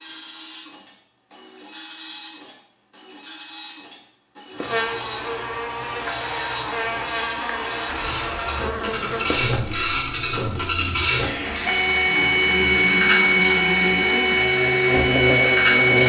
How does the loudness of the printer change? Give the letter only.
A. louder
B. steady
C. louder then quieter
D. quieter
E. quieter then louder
A.